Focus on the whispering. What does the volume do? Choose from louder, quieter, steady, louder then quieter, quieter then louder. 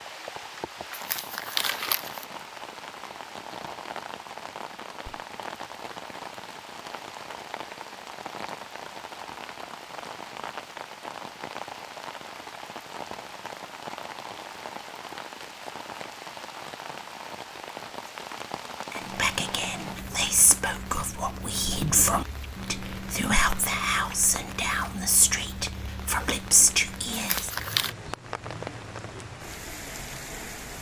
steady.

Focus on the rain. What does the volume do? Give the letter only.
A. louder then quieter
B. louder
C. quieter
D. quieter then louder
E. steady
E.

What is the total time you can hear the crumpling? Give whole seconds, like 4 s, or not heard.
2 s.